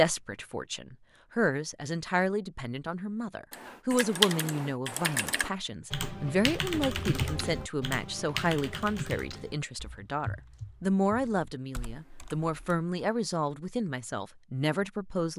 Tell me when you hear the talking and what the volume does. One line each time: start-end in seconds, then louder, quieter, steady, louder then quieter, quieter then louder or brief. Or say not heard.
0.0-15.3 steady.